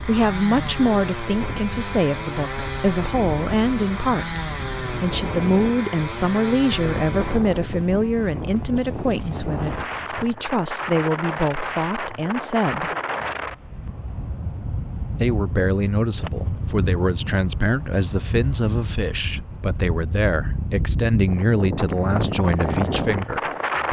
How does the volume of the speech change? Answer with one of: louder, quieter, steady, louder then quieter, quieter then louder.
steady.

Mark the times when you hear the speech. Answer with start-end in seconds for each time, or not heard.
0.1-12.9, 15.2-23.8.